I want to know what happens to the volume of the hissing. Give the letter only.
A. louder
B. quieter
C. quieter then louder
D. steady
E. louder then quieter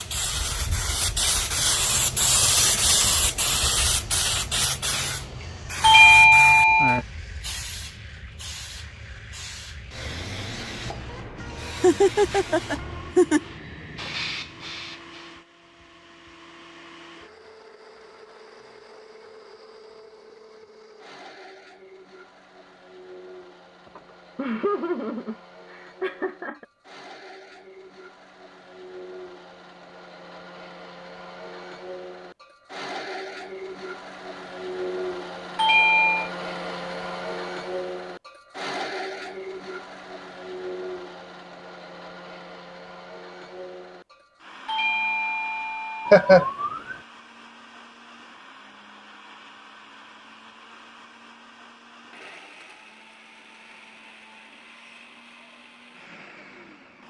B.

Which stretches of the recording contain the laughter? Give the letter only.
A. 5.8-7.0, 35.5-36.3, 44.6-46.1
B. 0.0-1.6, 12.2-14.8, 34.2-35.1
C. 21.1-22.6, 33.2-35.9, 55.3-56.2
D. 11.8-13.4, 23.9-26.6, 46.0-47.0
D.